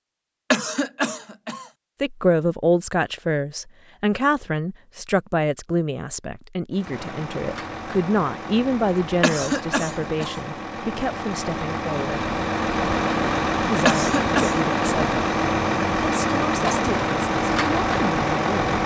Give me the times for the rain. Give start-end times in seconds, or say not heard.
not heard.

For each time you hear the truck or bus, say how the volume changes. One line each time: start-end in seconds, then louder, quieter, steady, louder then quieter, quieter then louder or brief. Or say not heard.
6.7-18.8 louder.